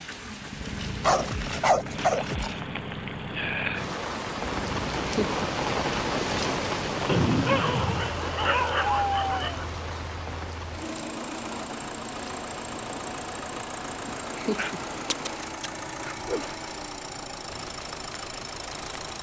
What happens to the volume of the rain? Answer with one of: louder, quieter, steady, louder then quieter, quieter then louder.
louder then quieter.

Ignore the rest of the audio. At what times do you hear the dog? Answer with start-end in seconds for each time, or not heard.
1.0-2.6, 7.0-9.7, 14.6-16.6.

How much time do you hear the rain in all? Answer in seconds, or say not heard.
19 s.